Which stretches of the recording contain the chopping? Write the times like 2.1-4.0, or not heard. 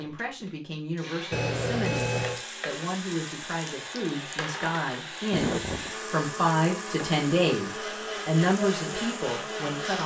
not heard.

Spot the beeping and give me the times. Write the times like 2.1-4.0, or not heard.
1.3-2.5, 5.3-5.9.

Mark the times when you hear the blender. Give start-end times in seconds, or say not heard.
0.0-10.0.